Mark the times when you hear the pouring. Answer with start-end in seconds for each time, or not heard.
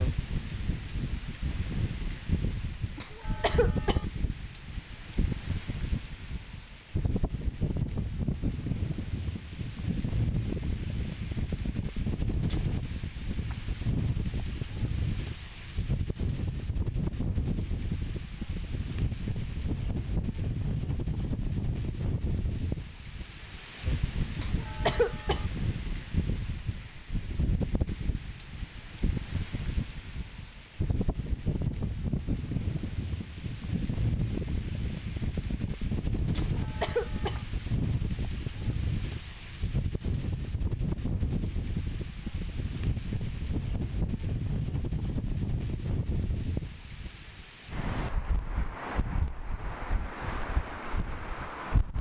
not heard.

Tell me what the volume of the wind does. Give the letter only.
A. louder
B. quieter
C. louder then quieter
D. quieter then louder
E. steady
E.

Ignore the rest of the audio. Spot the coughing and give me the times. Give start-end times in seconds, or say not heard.
3.0-4.0, 24.4-25.4, 36.4-37.4.